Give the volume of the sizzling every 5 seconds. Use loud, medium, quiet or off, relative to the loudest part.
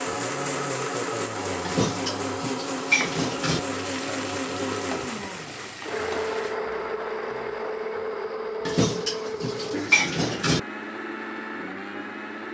loud, loud, off.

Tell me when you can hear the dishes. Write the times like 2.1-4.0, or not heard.
1.6-3.6, 8.7-10.6.